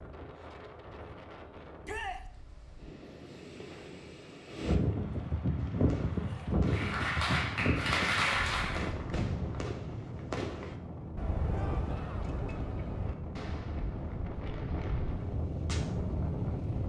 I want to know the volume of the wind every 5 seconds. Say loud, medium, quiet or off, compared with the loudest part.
medium, loud, medium, loud.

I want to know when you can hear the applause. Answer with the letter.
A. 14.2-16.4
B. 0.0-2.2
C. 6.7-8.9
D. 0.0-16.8
C.